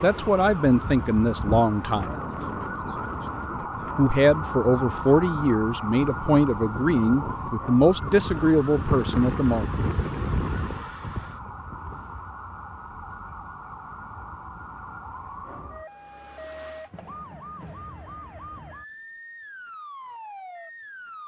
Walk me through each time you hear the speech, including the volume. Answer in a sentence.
You can hear the speech briefly from 0.0 to 2.1 s; and from 3.5 to 9.7 s, at a steady volume.